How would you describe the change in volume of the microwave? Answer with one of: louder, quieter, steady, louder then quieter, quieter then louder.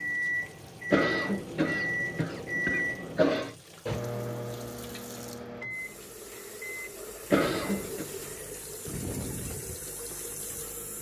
quieter.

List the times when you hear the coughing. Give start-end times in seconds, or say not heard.
0.9-3.5, 7.3-8.1.